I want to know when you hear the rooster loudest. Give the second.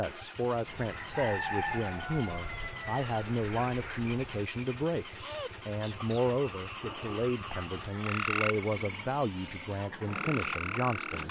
2 s.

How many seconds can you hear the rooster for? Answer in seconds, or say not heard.
4 s.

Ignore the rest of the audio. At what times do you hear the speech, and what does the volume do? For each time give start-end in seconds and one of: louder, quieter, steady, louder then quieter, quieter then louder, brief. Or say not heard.
0.0-11.2 steady.